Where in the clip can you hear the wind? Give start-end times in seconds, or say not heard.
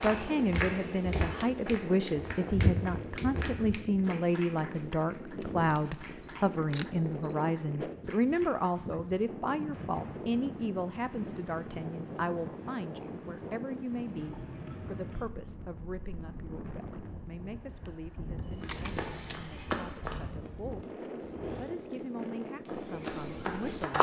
0.0-23.9.